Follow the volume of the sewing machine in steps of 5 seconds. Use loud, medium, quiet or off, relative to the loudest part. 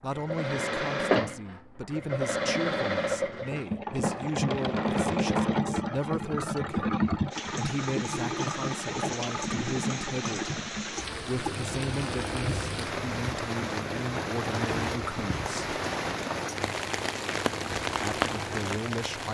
loud, loud, medium, quiet.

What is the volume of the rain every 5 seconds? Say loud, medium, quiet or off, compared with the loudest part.
off, medium, loud, loud.